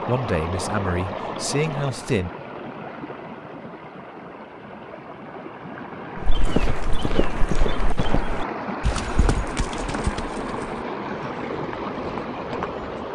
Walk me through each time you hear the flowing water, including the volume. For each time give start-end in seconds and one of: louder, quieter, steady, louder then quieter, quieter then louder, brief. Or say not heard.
0.0-13.1 quieter then louder.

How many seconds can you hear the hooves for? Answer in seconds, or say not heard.
7 s.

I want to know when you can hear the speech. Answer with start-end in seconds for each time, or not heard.
0.1-2.3.